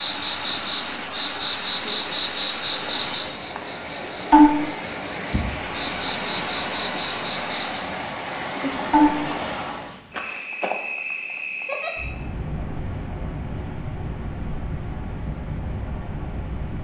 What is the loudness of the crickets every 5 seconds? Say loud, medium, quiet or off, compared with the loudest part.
loud, loud, medium, medium.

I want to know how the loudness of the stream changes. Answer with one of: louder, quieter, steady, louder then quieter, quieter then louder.
louder.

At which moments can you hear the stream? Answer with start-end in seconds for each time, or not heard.
0.0-10.0.